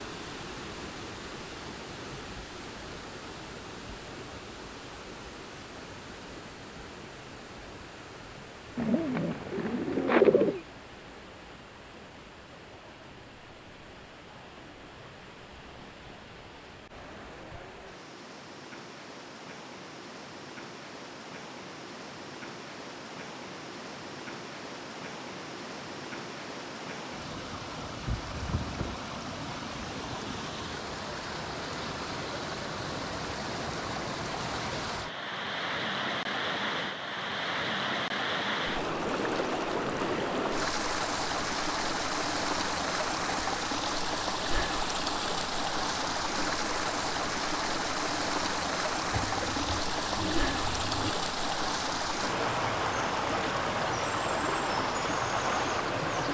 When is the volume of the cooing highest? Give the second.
10 s.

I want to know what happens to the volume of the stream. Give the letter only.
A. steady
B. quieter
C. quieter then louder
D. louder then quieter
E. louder
E.